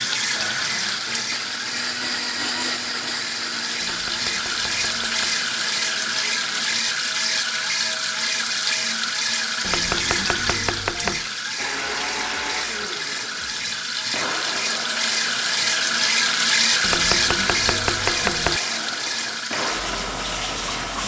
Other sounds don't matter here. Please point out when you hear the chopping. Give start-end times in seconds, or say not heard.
3.9-5.2, 9.6-11.3, 16.8-18.6.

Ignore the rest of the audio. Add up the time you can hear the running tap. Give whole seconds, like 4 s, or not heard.
21 s.